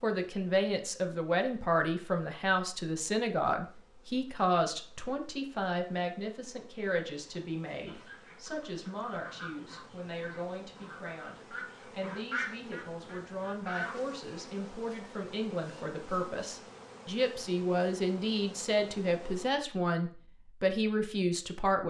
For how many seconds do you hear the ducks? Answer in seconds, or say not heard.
6 s.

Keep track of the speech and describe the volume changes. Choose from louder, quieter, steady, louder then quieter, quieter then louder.
quieter then louder.